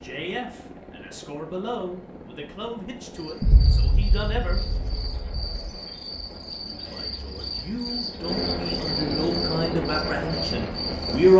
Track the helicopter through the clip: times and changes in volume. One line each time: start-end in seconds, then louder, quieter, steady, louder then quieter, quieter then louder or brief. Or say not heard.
0.0-11.3 louder.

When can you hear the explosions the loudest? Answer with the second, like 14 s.
4 s.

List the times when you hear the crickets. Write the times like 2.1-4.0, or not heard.
3.1-11.3.